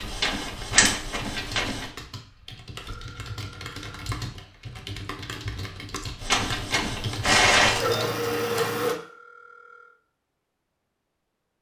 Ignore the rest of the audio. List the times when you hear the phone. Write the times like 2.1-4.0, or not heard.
2.9-4.2, 8.9-10.0.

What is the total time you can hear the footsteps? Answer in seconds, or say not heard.
not heard.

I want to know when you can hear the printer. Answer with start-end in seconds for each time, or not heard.
0.0-1.9, 6.2-8.9.